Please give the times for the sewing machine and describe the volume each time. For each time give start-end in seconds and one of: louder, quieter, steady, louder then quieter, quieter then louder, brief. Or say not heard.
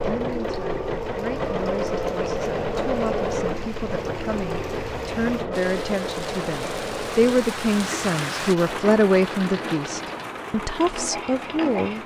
0.0-12.0 quieter.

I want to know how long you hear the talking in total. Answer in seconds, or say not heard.
12 s.